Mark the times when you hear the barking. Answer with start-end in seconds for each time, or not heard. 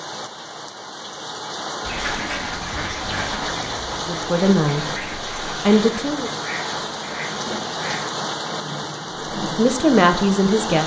not heard.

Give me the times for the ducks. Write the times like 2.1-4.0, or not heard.
1.8-8.1.